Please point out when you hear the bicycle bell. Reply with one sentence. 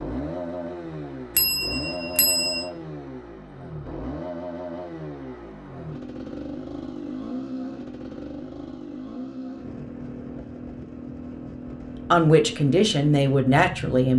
The bicycle bell can be heard from 1.4 to 2.6 s.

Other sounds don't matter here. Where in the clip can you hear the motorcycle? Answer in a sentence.
The motorcycle can be heard from 0.0 to 13.9 s.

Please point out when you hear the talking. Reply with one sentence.
The talking can be heard from 12.1 to 14.1 s.